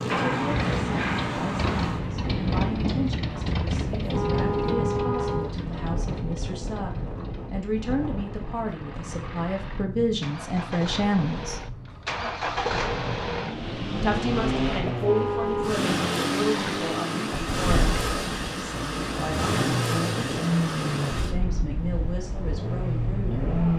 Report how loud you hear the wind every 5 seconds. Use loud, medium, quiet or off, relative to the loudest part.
loud, medium, medium, loud, medium.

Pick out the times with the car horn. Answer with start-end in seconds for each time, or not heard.
3.9-5.5, 14.8-15.8.